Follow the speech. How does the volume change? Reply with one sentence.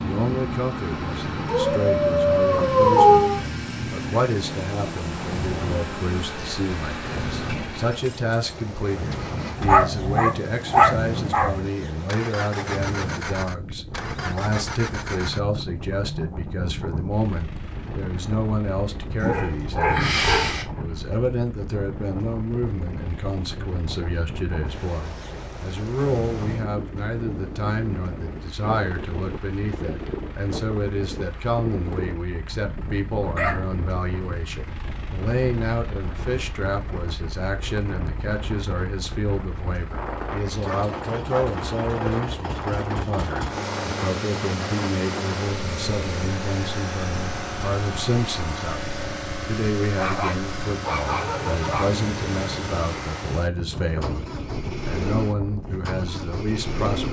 The volume of the speech stays about the same.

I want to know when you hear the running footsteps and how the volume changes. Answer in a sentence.
You can't hear the running footsteps here.